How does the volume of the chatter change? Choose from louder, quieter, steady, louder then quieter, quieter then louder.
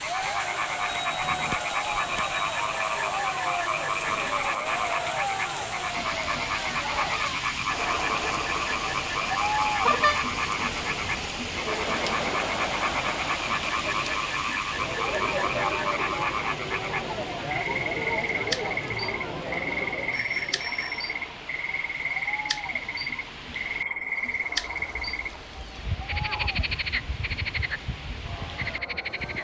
quieter.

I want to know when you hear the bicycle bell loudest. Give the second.
10 s.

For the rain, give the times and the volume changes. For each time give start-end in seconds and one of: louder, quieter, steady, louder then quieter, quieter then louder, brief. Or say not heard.
0.0-29.3 quieter.